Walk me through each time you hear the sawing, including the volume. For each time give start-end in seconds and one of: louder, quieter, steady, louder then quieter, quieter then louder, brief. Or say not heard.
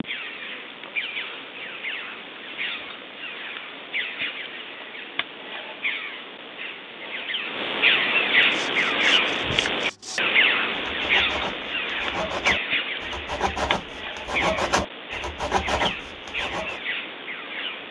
8.4-16.8 louder.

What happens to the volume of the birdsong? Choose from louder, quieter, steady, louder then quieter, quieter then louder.
louder then quieter.